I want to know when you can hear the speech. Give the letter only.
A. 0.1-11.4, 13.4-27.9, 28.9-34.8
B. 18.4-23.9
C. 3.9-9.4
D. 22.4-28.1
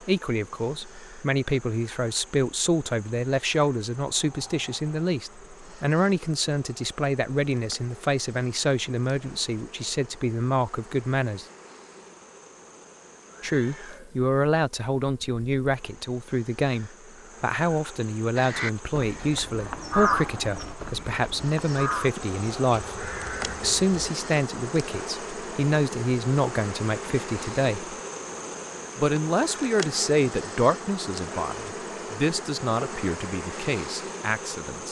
A.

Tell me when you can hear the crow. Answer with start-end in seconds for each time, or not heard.
18.4-23.9.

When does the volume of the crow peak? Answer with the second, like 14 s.
20 s.